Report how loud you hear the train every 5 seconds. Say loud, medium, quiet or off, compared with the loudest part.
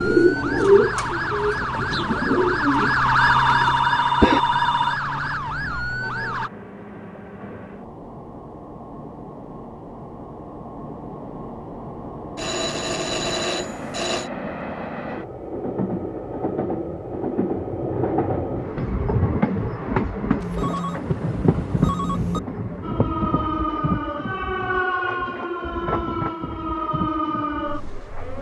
quiet, quiet, medium, loud, loud, medium.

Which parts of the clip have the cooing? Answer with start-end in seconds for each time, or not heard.
0.0-4.4.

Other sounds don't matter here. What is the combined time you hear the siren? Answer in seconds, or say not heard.
12 s.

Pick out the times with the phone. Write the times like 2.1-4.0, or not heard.
3.1-5.0, 12.3-14.3, 20.4-22.4.